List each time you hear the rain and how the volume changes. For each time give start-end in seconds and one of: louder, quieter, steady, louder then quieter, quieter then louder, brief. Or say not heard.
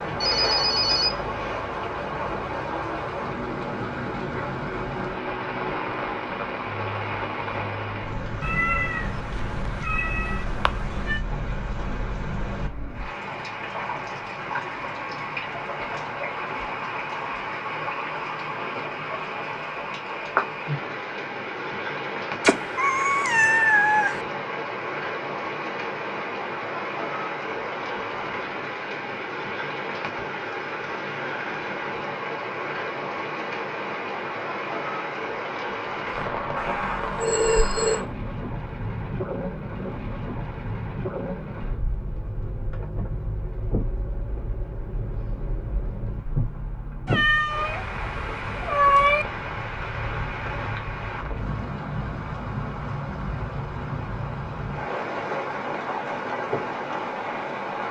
0.0-57.8 steady.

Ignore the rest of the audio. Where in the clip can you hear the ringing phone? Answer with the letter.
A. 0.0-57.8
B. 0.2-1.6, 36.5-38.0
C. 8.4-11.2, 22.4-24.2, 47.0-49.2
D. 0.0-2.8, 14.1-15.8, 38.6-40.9
B.